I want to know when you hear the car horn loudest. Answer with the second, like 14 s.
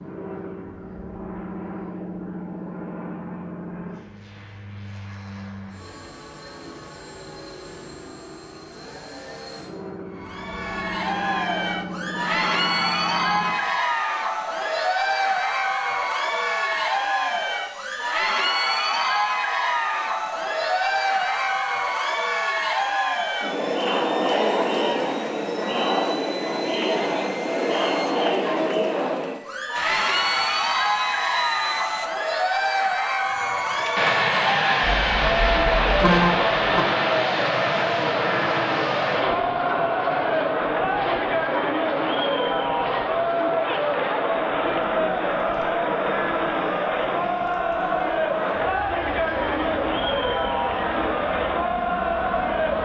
36 s.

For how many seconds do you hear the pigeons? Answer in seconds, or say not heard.
not heard.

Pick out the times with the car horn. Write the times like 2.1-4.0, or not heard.
34.8-36.9.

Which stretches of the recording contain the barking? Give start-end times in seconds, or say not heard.
not heard.